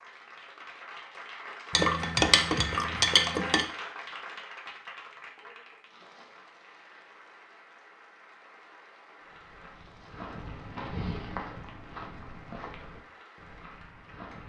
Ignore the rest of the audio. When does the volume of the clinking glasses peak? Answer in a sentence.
The loudest moment of the clinking glasses is at 2 seconds.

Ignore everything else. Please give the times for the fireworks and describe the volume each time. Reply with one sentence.
The fireworks can't be heard in this clip.